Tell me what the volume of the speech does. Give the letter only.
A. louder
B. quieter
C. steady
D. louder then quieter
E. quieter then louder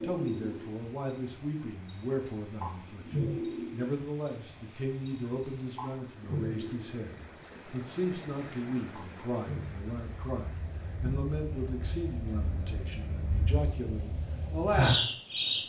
C.